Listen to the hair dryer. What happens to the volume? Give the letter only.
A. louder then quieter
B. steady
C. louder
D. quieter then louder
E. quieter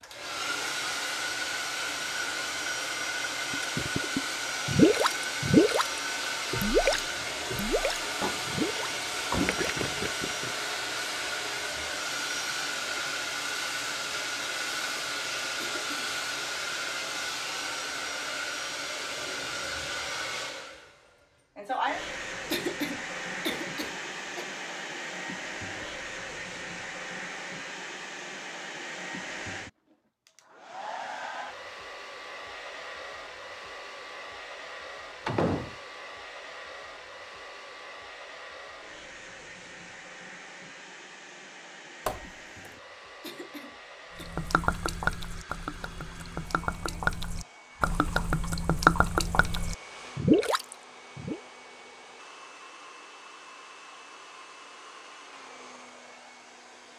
E.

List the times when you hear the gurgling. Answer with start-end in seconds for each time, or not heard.
3.5-10.6, 44.2-51.4.